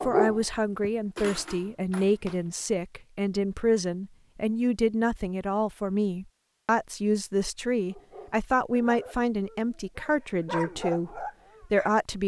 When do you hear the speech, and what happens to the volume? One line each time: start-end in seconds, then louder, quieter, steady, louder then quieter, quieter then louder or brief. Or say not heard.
0.0-12.2 steady.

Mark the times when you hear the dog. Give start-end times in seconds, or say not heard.
0.0-2.4, 7.8-11.9.